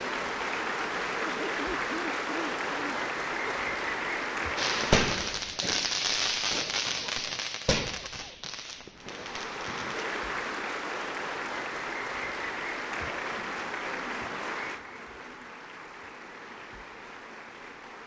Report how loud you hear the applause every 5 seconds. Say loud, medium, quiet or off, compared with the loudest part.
loud, medium, loud, quiet.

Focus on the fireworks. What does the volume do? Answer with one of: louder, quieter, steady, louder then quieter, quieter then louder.
quieter.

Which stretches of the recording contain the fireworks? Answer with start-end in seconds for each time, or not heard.
4.5-10.1.